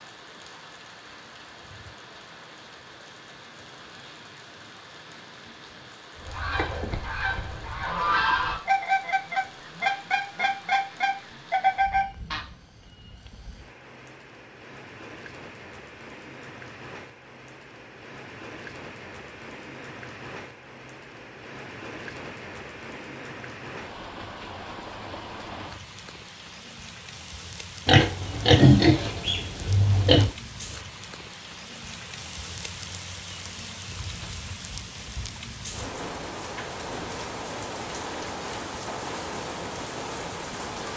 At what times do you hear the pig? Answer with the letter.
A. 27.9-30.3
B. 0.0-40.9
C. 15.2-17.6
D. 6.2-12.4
A.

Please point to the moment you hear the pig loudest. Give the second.
29 s.